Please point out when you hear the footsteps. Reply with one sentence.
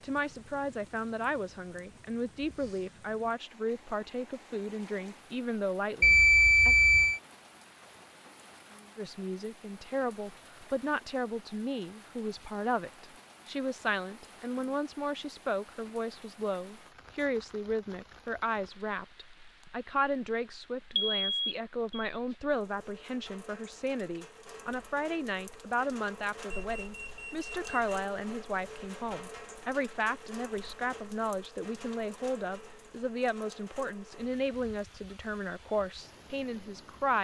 The footsteps can't be heard in this clip.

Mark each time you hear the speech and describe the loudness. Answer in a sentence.
The speech can be heard from 0.0 to 6.8 s, at a steady volume; and from 8.9 to 37.1 s, at a steady volume.